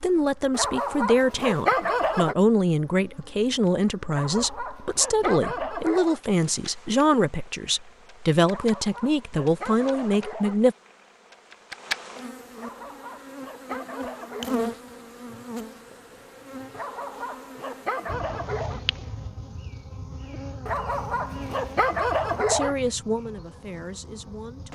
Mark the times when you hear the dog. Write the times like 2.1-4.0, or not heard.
0.5-2.4, 4.1-6.2, 8.4-10.6, 12.6-14.5, 16.7-18.8, 20.6-22.8.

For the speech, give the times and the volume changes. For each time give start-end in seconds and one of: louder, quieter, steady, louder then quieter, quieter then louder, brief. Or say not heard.
0.0-10.8 steady
22.4-24.7 brief.